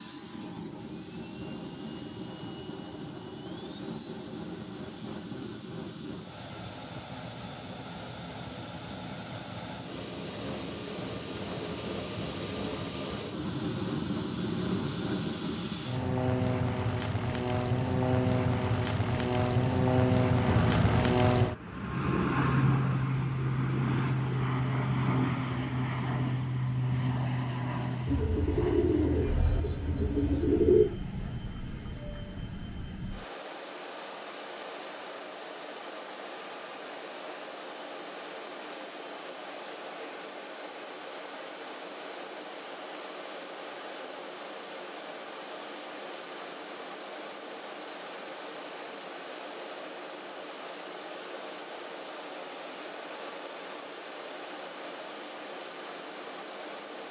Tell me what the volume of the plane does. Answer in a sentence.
The loudness of the plane goes up, then down.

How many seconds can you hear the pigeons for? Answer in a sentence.
The pigeons can be heard for 3 seconds in total.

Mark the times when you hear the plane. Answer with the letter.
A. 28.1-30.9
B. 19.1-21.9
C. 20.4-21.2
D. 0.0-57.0
D.